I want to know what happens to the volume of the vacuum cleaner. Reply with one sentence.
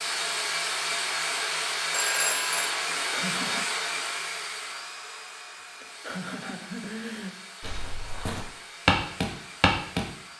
The loudness of the vacuum cleaner goes down.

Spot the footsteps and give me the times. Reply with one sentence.
The footsteps can be heard from 7.6 to 10.0 s.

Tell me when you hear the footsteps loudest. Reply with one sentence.
The loudest moment of the footsteps is at 9 seconds.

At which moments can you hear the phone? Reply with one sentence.
You can hear the phone from 1.9 to 2.7 s.